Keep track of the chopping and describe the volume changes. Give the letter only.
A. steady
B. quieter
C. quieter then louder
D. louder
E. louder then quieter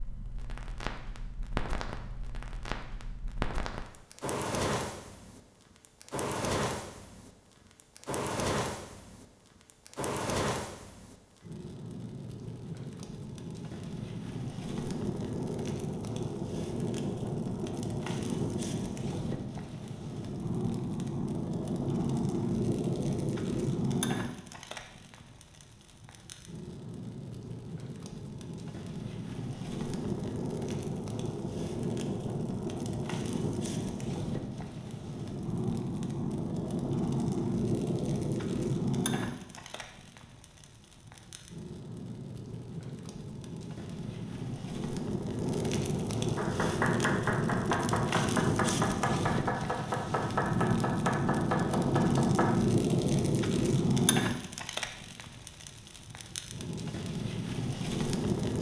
A.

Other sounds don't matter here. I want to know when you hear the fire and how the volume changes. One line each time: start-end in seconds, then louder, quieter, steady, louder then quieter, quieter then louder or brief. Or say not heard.
0.0-58.5 louder.